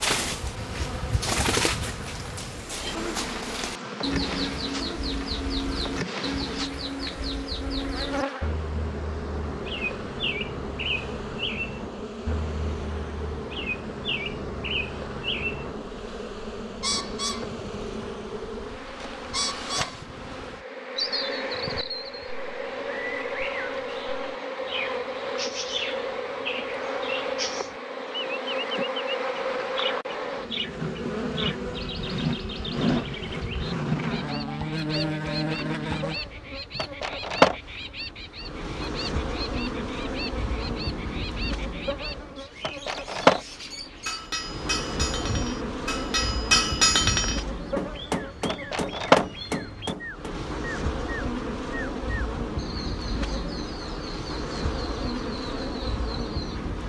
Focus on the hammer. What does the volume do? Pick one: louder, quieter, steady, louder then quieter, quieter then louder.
louder then quieter.